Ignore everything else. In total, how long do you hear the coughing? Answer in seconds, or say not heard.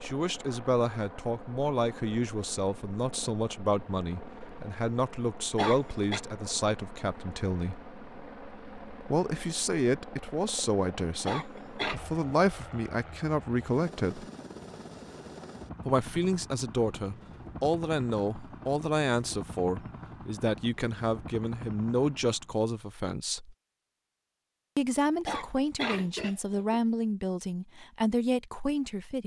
3 s.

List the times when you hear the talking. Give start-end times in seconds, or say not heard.
0.0-7.8, 9.0-14.2, 15.8-23.6, 24.8-29.2.